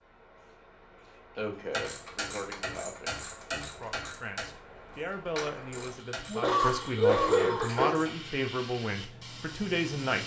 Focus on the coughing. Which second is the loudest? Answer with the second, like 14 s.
7 s.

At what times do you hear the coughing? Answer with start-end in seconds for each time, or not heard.
1.4-3.1, 6.2-8.1.